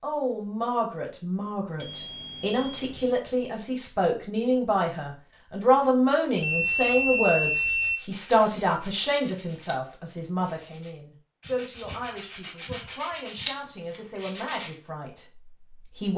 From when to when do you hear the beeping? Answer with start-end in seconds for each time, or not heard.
1.8-3.1, 6.4-8.0, 11.4-13.4.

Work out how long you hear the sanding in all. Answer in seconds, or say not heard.
7 s.